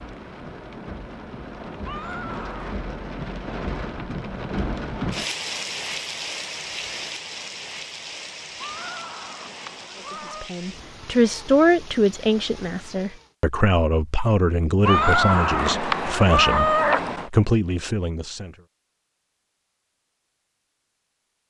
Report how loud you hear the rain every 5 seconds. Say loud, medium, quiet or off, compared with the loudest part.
loud, loud, medium, off, off.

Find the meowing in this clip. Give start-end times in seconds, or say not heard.
1.9-2.9, 8.6-10.5, 14.8-17.3.